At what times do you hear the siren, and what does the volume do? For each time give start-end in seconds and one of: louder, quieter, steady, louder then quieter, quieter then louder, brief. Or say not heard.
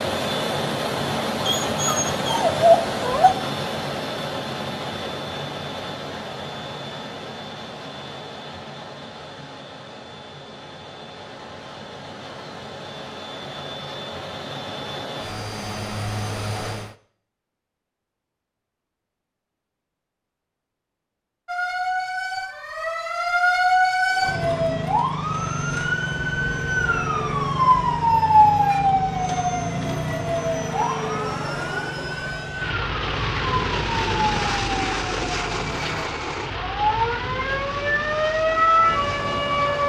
21.4-39.8 quieter then louder.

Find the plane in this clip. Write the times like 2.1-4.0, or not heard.
0.0-16.9, 24.1-39.8.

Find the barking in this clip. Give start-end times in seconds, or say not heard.
1.4-3.3.